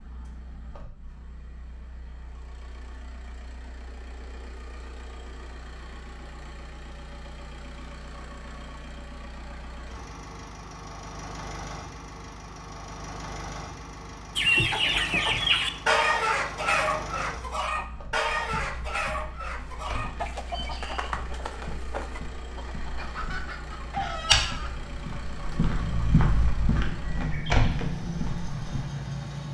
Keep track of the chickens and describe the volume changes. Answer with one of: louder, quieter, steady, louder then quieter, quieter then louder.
quieter.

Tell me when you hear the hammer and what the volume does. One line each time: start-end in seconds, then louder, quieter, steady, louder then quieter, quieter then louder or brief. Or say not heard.
not heard.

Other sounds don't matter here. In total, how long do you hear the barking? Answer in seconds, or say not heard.
not heard.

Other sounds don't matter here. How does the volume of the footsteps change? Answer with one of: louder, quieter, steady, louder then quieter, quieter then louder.
louder.